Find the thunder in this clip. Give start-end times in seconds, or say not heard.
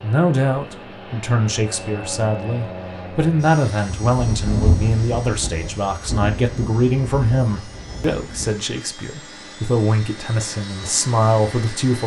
3.9-8.7.